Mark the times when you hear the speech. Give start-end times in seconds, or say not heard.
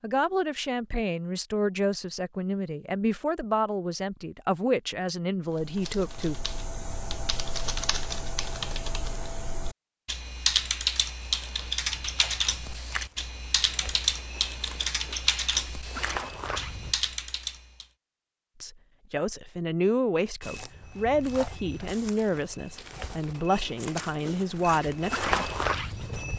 0.0-6.4, 18.6-25.5.